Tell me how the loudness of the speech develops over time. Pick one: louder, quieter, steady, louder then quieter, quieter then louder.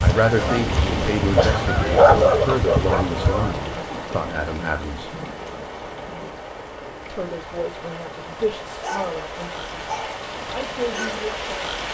quieter.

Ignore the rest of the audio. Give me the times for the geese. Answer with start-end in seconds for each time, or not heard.
0.0-3.7.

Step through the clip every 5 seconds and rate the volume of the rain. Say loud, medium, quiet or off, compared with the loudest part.
loud, medium, loud.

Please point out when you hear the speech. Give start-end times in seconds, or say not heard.
0.0-5.2, 7.0-11.9.